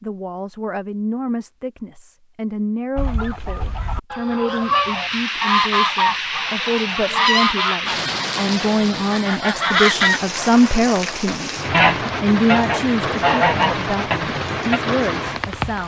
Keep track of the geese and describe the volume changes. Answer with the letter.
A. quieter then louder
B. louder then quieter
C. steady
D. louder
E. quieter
D.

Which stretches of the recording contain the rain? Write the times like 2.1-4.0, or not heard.
4.5-15.8.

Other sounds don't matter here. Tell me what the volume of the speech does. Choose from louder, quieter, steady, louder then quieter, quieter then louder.
louder then quieter.